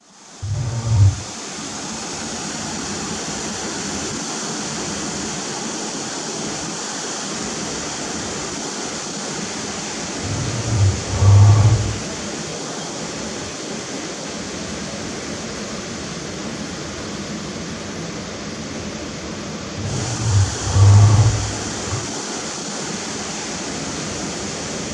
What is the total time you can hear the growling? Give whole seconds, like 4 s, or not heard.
5 s.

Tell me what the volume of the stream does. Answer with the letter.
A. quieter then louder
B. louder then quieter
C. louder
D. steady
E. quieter
D.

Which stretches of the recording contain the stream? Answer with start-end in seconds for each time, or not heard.
0.0-24.9.